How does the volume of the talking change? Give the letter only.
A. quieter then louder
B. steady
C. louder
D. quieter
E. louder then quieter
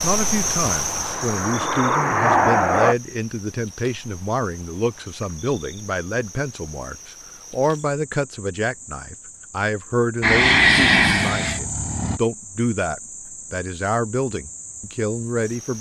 B.